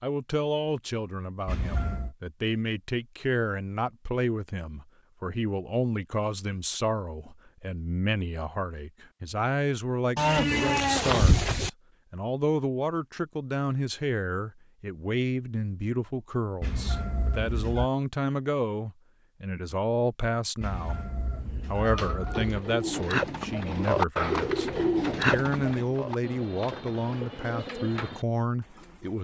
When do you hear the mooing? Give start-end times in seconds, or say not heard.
10.2-11.7.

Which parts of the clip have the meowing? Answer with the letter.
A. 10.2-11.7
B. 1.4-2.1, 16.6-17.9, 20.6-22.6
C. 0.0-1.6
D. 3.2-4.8
B.